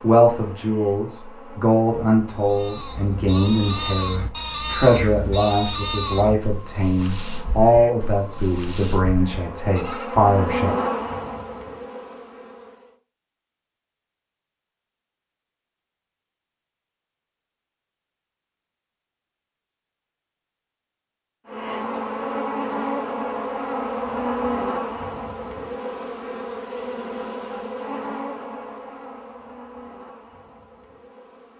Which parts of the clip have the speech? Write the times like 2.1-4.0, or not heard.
0.0-10.8.